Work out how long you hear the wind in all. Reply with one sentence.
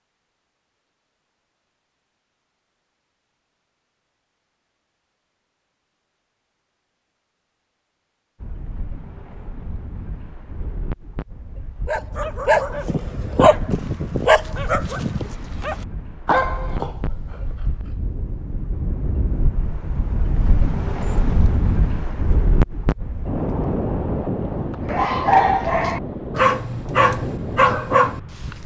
The wind can be heard for 20 seconds in total.